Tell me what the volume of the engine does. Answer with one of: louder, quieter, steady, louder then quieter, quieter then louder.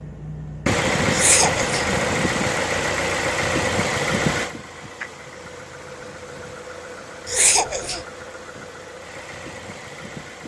quieter.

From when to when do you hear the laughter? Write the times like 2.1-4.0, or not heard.
1.1-1.8, 7.2-8.1.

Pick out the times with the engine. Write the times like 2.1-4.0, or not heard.
0.0-10.4.